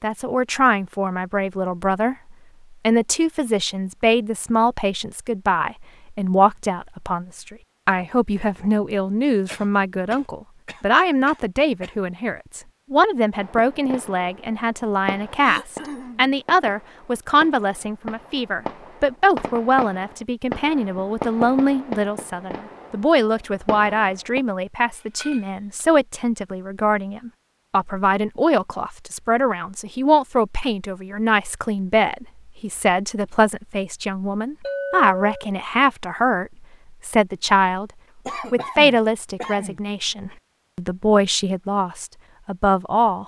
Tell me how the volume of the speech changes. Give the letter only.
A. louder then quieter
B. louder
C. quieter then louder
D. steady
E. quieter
D.